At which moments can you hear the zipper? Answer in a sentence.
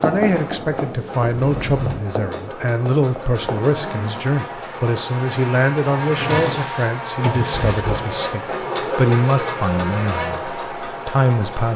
The zipper can be heard from 3.4 to 4.2 s and from 7.5 to 8.2 s.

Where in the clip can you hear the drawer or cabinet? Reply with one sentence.
You can hear the drawer or cabinet from 1.2 to 2.0 s and from 6.1 to 7.5 s.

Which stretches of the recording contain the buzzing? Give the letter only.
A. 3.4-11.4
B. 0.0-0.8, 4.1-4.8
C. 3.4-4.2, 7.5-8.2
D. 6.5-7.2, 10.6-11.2
A.